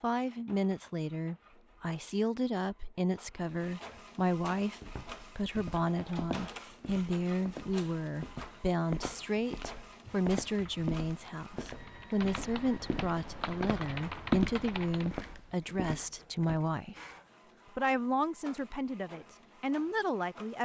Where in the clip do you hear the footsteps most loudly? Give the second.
14 s.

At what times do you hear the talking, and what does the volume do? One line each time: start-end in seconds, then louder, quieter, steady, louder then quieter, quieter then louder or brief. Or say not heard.
0.0-17.1 steady
17.8-20.6 brief.